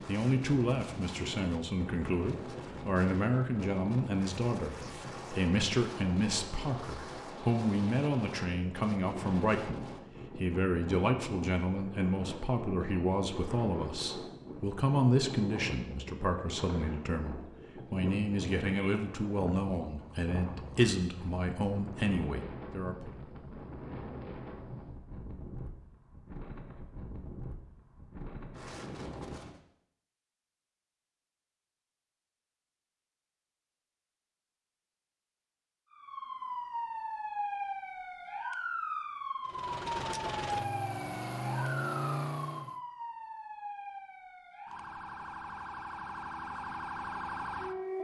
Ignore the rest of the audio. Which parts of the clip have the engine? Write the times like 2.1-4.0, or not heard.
39.5-42.8.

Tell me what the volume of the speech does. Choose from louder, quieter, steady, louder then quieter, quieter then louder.
steady.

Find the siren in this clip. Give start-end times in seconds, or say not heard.
35.9-47.9.